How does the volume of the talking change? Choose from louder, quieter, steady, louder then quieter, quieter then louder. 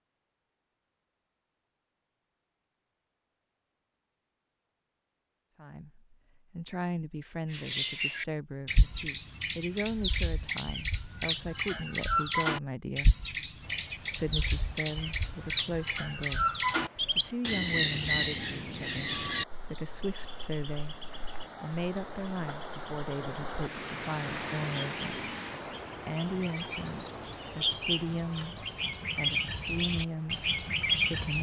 steady.